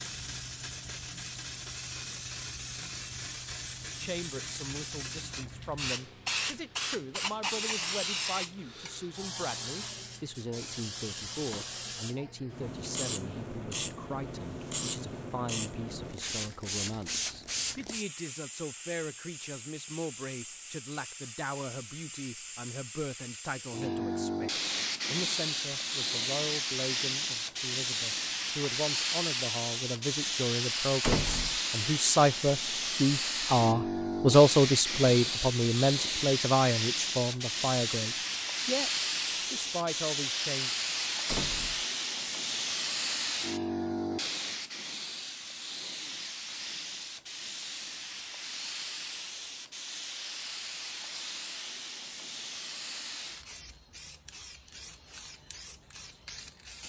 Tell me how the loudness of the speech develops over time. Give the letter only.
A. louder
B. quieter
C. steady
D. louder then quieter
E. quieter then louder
A.